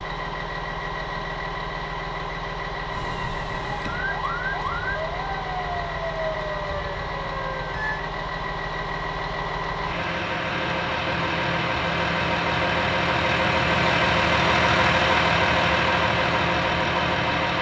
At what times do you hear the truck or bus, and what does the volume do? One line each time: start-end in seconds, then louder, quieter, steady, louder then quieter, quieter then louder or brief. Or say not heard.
0.0-17.5 louder.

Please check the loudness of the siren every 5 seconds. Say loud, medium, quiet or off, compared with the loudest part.
loud, loud, off, off.